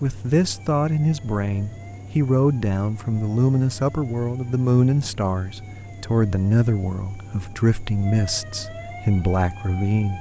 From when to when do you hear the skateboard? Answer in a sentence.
You can't hear the skateboard here.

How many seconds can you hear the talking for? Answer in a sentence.
The talking can be heard for 10 seconds in total.